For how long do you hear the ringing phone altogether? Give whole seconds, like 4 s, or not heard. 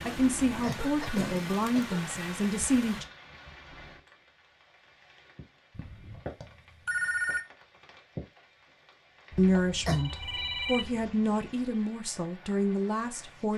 4 s.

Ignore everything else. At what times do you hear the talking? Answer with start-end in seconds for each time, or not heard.
0.1-3.0, 9.3-13.5.